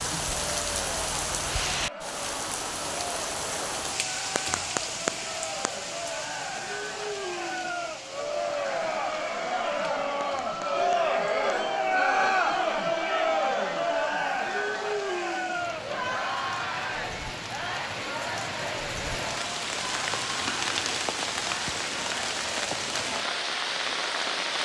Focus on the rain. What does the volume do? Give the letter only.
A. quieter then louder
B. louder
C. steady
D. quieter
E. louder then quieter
A.